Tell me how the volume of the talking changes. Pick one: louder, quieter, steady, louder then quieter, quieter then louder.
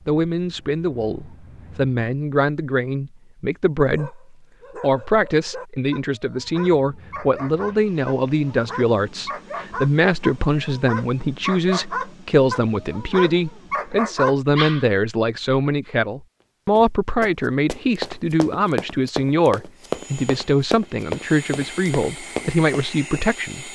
steady.